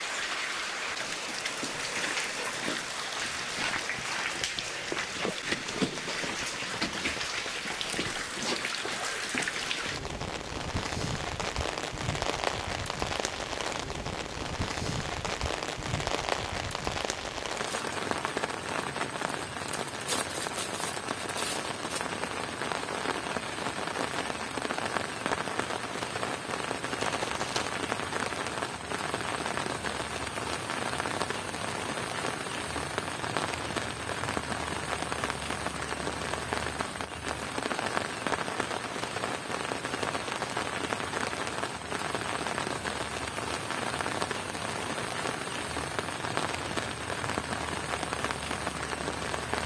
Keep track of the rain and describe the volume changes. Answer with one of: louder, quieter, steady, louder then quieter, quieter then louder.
steady.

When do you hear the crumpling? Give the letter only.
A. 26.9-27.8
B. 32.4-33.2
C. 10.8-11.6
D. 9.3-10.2
A.